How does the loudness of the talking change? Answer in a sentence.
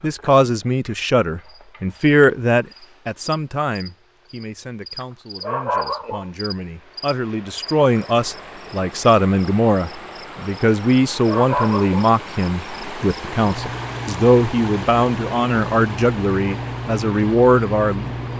The volume of the talking goes down, then up.